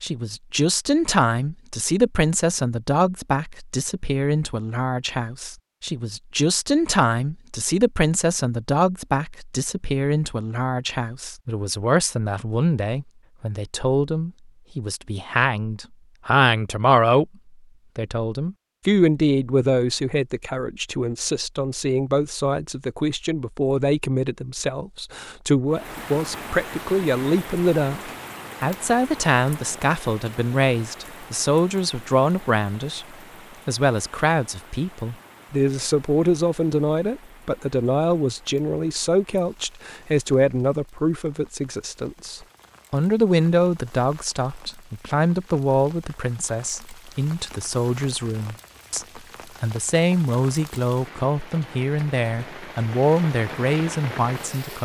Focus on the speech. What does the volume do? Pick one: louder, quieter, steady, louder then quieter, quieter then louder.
steady.